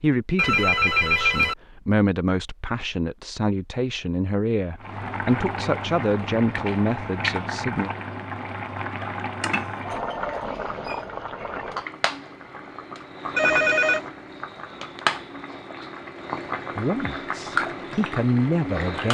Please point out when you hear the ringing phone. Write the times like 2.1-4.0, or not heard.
0.3-1.6, 9.4-10.4, 13.3-14.1.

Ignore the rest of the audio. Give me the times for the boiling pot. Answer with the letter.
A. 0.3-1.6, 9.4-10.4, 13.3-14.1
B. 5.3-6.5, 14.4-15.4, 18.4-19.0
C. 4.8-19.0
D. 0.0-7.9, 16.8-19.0
C.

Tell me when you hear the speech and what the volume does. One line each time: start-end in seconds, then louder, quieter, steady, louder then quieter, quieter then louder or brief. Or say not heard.
0.0-7.9 louder
16.8-19.0 brief.